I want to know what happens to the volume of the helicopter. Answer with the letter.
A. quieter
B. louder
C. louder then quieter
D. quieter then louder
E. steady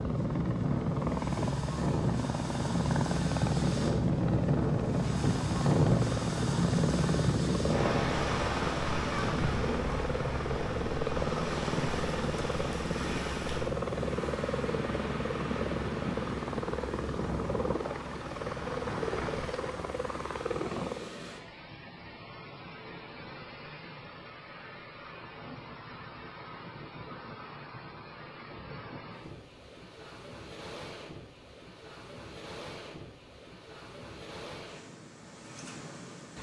E.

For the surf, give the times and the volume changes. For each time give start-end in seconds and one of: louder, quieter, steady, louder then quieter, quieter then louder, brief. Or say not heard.
0.0-36.3 quieter.